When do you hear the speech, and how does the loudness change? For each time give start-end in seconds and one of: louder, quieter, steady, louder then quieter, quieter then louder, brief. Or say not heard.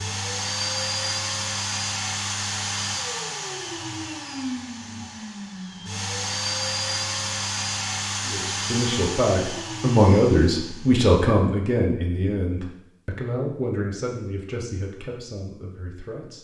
8.2-16.3 quieter.